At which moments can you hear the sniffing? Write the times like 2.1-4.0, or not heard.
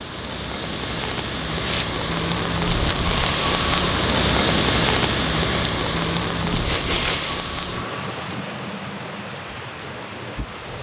1.5-1.9, 6.5-7.5.